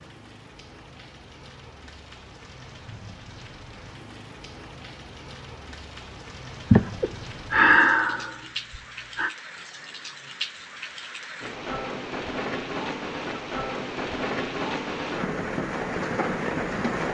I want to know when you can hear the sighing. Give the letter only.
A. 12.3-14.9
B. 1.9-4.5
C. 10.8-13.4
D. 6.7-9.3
D.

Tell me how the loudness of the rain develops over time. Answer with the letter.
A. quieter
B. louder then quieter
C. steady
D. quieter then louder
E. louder
E.